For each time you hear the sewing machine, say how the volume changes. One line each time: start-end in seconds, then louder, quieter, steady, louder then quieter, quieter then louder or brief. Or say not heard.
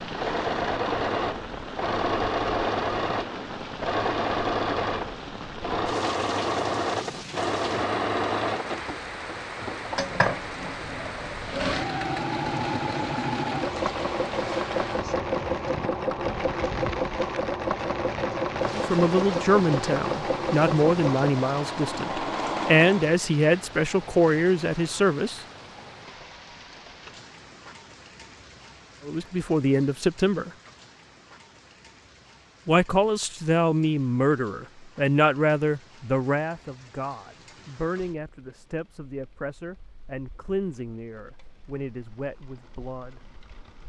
0.0-23.1 steady.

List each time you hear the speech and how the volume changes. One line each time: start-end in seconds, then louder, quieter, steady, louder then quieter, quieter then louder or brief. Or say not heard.
18.8-25.4 quieter then louder
29.1-30.5 brief
32.6-43.2 quieter.